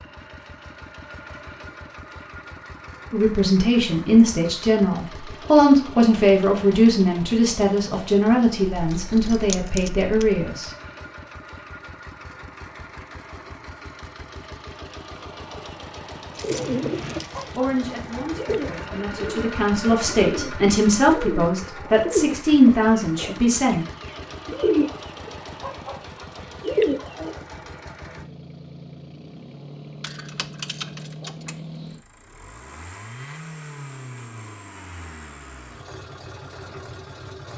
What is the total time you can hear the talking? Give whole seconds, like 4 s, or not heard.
14 s.